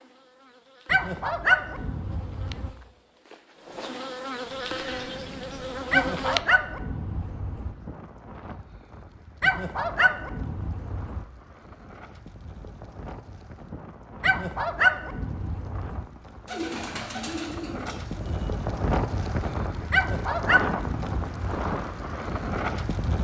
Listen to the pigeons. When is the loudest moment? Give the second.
17 s.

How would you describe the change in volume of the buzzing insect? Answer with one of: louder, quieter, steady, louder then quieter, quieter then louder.
louder.